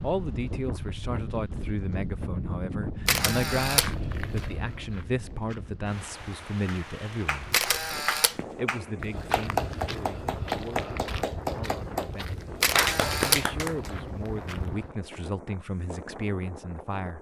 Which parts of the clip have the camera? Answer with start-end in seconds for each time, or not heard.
3.0-3.9, 7.5-8.3, 12.6-13.4.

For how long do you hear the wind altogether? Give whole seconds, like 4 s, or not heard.
17 s.